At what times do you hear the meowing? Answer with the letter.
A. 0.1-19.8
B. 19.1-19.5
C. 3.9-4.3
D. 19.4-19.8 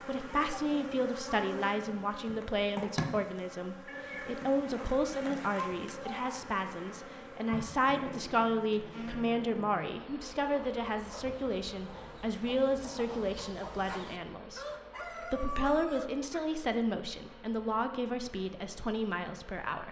C.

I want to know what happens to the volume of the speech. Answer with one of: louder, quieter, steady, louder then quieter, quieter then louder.
steady.